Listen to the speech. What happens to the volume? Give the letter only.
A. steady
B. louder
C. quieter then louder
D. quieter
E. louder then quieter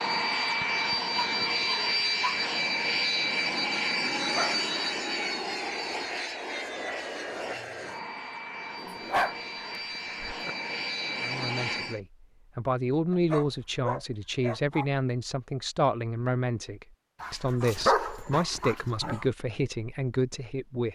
A.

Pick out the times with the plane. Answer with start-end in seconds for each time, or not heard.
0.0-12.0.